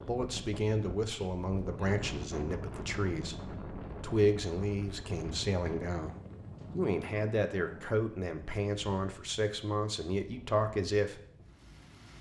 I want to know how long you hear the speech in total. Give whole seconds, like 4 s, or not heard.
11 s.